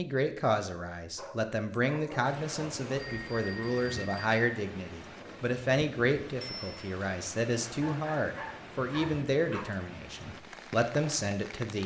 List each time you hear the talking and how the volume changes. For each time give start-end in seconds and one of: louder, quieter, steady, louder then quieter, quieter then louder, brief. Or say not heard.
0.0-11.8 steady.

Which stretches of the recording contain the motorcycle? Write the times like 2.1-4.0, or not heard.
not heard.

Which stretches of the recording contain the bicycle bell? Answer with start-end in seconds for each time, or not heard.
3.0-4.4, 6.4-6.8.